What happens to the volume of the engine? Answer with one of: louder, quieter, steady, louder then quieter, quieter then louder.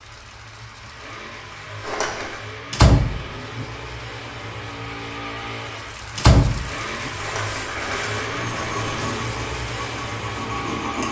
louder.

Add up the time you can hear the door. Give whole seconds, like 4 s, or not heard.
2 s.